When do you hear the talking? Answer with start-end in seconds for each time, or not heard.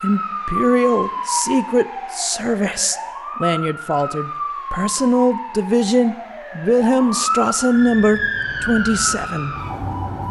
0.0-9.6.